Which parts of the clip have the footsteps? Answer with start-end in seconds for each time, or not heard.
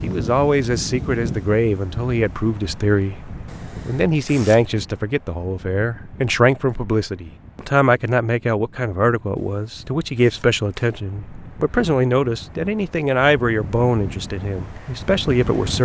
not heard.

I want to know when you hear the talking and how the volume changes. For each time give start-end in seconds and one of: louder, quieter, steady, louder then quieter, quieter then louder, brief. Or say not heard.
0.0-15.7 steady.